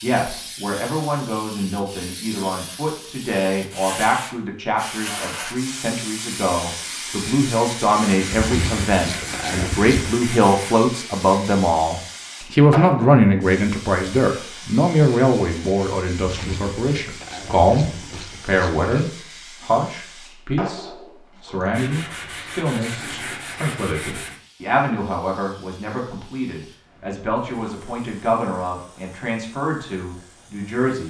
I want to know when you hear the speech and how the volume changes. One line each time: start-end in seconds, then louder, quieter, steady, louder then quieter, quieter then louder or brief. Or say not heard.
0.0-31.0 louder then quieter.